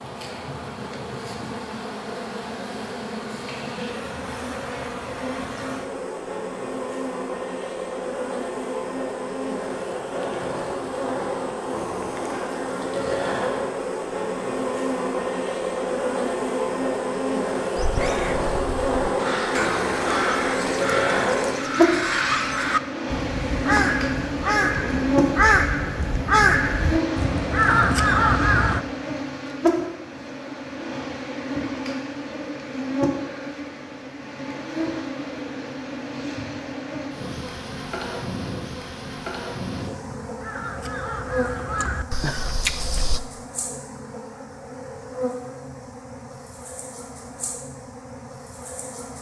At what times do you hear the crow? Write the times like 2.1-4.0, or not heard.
17.8-28.8, 40.2-43.2.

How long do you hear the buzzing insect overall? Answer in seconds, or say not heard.
49 s.